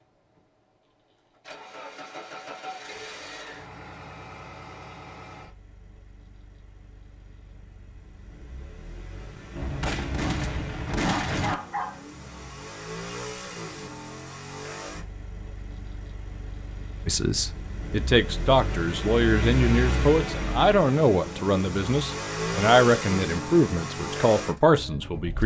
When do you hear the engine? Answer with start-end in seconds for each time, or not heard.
0.0-25.4.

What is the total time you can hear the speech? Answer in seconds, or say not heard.
8 s.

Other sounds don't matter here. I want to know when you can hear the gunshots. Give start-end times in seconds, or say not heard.
9.6-11.6.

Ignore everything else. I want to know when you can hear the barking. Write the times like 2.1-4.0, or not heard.
11.1-12.0.